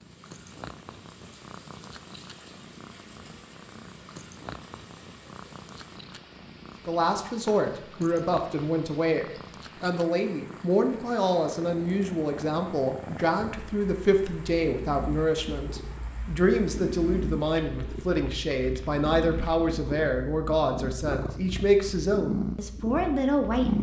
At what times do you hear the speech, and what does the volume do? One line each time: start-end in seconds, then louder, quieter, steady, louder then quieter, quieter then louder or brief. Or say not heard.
6.8-23.7 steady.